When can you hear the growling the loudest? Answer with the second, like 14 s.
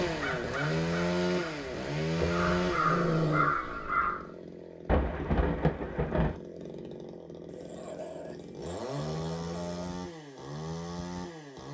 3 s.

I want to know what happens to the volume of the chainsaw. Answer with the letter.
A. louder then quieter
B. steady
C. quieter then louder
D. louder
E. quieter
C.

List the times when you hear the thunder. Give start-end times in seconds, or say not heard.
4.8-6.3.